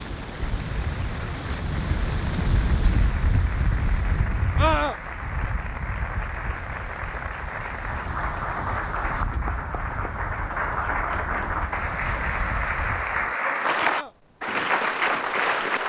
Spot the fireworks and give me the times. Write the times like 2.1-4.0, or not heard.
not heard.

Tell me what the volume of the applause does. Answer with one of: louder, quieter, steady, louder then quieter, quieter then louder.
louder.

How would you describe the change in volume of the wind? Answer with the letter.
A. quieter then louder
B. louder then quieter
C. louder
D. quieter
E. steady
D.